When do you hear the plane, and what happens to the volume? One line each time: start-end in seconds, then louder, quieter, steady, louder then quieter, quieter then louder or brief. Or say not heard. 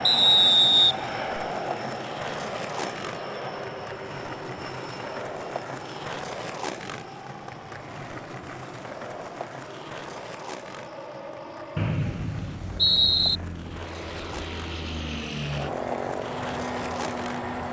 0.0-17.6 quieter then louder.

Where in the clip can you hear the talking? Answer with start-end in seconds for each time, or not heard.
not heard.